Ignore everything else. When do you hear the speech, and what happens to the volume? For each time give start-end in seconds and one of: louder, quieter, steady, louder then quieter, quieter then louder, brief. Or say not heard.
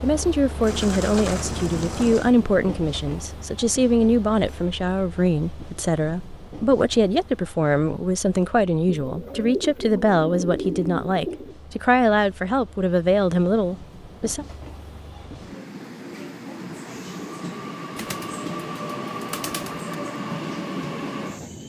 0.0-14.4 steady.